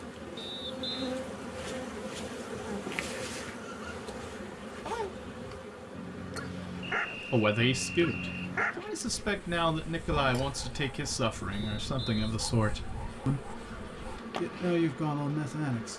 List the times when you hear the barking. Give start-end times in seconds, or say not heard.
3.6-14.2.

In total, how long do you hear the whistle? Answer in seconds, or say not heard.
3 s.